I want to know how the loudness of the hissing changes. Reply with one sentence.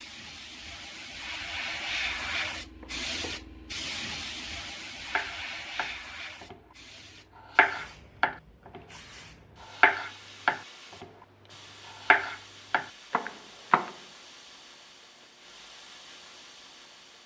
The loudness of the hissing goes down.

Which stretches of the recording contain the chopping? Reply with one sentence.
The chopping can be heard from 2.8 to 3.9 s, from 5.0 to 6.5 s, from 7.5 to 8.8 s, from 9.8 to 11.1 s and from 12.0 to 13.9 s.